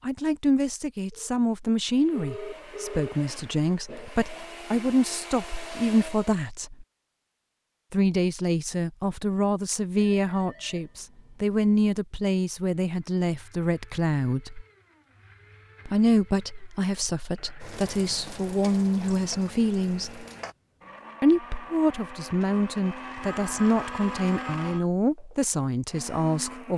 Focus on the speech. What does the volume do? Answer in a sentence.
The volume of the speech stays about the same.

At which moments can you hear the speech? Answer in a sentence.
The speech can be heard from 0.0 to 6.8 s, from 7.9 to 14.7 s, from 15.8 to 20.2 s and from 21.2 to 26.7 s.